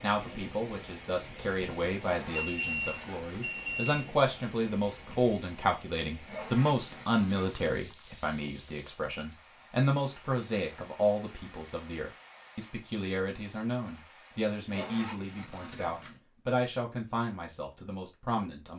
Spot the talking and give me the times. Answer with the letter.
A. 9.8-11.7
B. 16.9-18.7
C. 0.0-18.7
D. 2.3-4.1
C.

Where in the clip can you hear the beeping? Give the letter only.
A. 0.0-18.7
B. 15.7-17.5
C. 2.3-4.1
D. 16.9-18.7
C.